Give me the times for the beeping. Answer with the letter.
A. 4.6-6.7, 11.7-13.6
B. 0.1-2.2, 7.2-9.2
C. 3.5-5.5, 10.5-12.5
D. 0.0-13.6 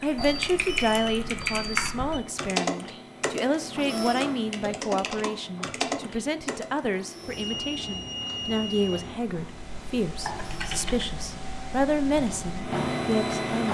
B.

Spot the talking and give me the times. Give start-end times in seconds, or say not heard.
0.0-13.6.